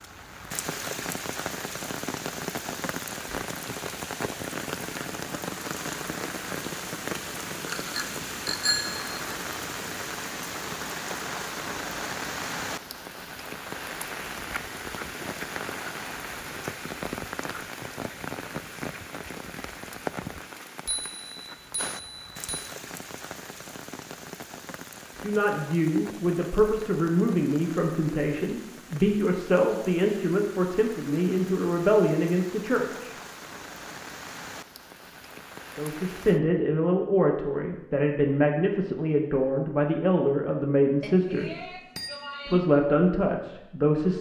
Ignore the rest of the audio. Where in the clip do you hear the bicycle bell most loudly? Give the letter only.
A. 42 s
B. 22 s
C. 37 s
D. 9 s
D.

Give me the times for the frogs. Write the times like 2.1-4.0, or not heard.
not heard.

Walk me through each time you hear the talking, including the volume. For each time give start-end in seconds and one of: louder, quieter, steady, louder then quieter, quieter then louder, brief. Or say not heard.
25.2-33.1 steady
35.8-41.7 steady
42.5-44.1 brief.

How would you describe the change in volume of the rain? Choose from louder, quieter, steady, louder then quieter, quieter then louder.
quieter.